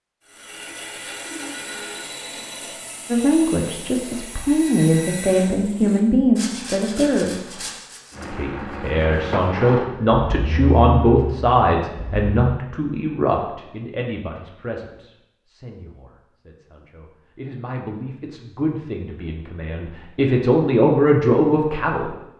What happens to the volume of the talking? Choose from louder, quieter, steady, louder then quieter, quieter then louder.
quieter then louder.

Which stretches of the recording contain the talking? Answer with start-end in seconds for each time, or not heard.
3.1-7.6, 8.3-22.1.